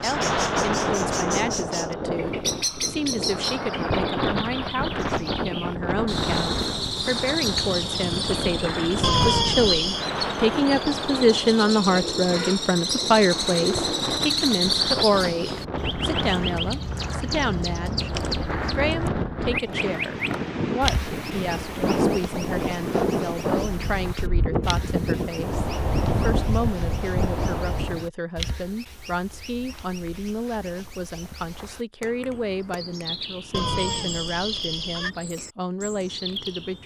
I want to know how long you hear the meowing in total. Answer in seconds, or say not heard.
3 s.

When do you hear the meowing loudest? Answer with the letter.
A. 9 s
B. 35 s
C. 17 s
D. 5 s
A.